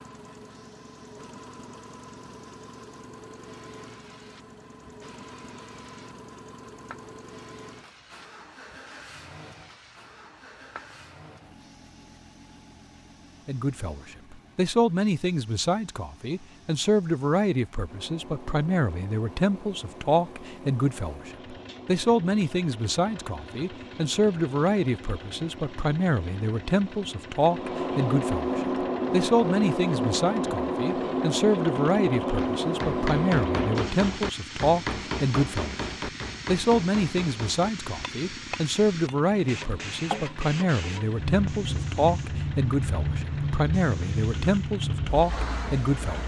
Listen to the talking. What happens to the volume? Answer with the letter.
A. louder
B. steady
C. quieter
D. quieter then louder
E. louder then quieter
B.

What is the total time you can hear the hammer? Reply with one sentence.
The hammer can be heard for 7 seconds in total.